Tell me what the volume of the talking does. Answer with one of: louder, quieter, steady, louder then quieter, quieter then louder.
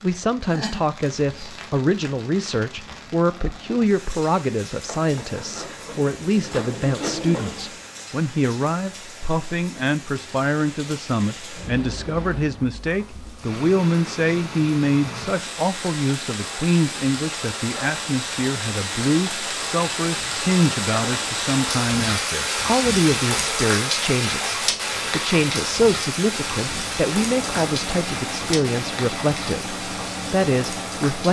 steady.